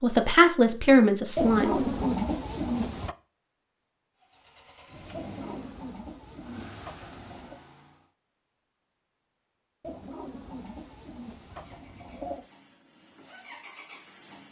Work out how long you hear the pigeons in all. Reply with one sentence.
The pigeons can be heard for 7 seconds in total.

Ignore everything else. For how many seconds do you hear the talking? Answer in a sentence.
The talking can be heard for 2 seconds in total.